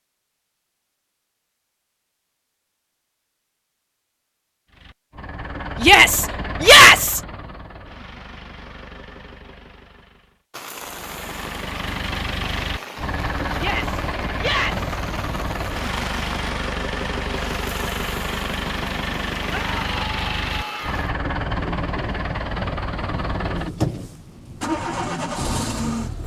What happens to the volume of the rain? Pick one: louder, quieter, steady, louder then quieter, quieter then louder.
steady.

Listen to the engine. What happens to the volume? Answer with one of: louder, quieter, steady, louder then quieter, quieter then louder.
louder.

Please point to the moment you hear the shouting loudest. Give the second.
7 s.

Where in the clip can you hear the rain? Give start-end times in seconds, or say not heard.
10.5-26.2.